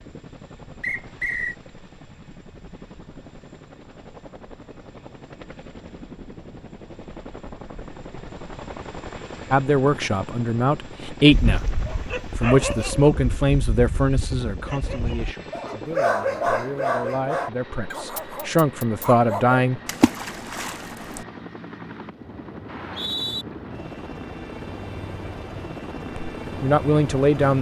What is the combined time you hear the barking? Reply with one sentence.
The barking can be heard for 8 seconds in total.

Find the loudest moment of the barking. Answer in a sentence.
The loudest moment of the barking is at 16 seconds.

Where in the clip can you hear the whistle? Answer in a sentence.
The whistle can be heard from 0.8 to 1.6 s and from 22.6 to 23.4 s.